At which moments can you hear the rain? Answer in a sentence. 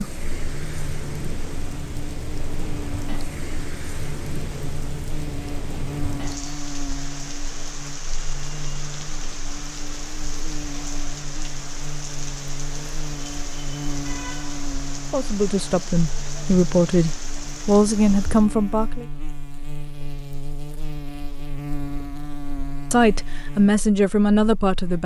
The rain can be heard from 0.0 to 18.5 s.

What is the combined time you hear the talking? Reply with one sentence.
You can hear the talking for 6 seconds altogether.